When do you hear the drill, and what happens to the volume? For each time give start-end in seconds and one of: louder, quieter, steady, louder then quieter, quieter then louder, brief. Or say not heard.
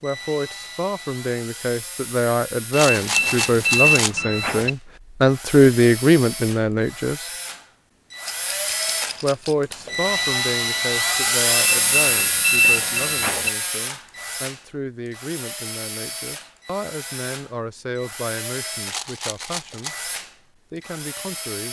0.0-21.6 louder then quieter.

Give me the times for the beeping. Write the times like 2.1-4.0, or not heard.
2.9-4.7, 11.5-13.5.